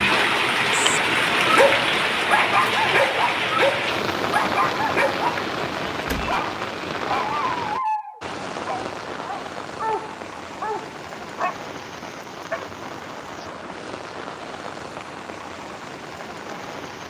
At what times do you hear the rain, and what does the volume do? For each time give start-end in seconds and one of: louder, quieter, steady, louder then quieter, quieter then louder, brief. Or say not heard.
0.0-17.0 quieter.